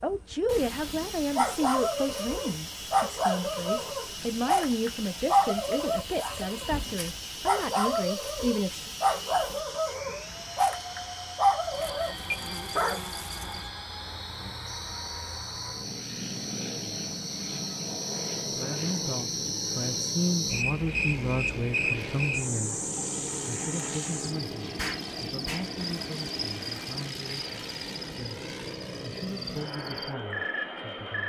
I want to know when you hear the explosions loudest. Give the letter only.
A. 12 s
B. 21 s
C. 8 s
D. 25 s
D.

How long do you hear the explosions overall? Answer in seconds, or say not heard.
2 s.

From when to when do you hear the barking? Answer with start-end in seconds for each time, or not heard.
1.4-13.0.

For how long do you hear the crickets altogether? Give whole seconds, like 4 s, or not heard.
31 s.